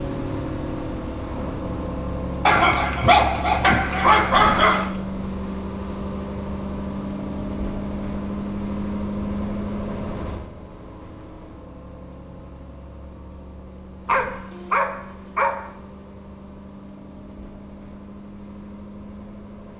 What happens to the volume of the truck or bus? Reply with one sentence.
The volume of the truck or bus goes down.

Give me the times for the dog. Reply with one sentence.
The dog can be heard from 2.5 to 4.9 s and from 14.1 to 15.7 s.